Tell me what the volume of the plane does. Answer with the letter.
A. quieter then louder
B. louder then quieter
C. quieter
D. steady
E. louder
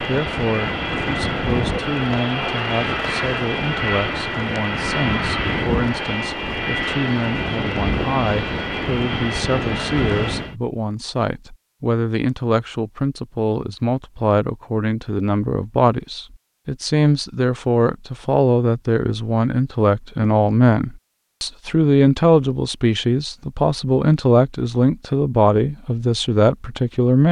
D.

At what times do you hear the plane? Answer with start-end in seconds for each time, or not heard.
0.0-10.6.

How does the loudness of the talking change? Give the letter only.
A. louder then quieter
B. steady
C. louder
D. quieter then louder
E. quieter
C.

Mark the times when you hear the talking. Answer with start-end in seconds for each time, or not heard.
0.0-27.2.